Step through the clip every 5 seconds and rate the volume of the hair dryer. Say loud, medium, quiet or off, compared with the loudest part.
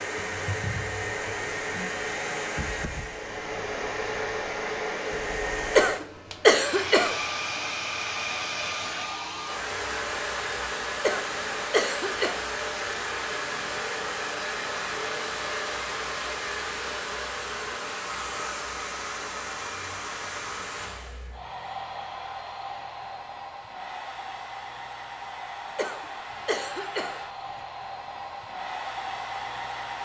loud, loud, loud, loud, medium, medium.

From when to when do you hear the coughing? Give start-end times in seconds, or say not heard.
5.8-7.2, 11.0-12.3, 25.8-27.2.